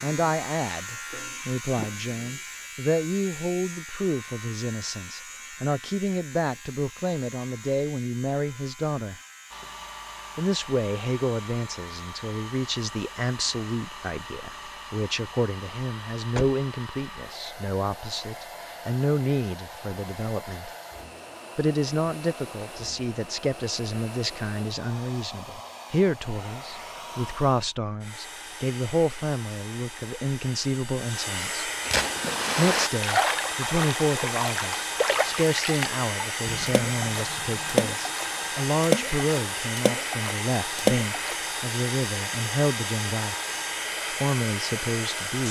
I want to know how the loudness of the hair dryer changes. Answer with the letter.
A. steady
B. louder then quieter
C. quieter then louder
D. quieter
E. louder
E.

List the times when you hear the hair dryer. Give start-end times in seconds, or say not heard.
9.5-45.4.